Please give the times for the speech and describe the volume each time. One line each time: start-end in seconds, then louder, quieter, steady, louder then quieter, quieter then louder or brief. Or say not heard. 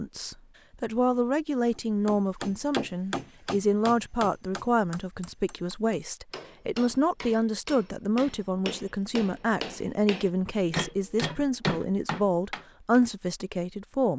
0.0-14.1 steady.